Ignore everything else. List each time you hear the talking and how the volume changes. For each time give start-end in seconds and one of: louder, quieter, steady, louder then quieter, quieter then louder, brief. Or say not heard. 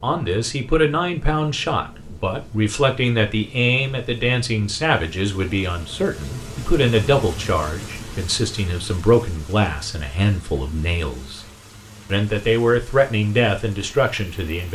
0.0-11.4 steady
12.1-14.6 brief.